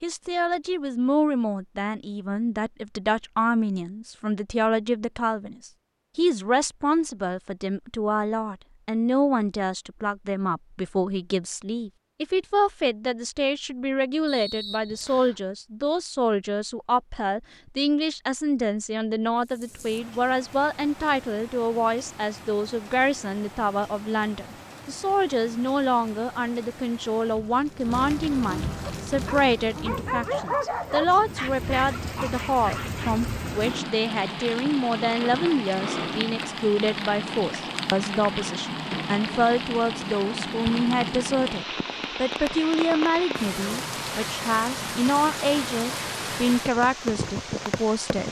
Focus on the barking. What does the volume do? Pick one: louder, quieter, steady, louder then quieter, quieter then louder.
louder then quieter.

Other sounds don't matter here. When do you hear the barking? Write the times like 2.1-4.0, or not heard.
28.8-33.1.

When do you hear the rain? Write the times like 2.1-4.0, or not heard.
19.4-48.2.